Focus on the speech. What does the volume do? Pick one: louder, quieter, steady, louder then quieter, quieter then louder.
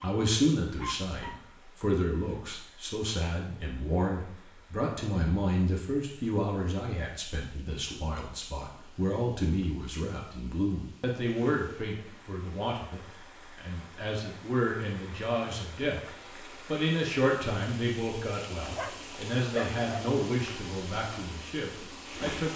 steady.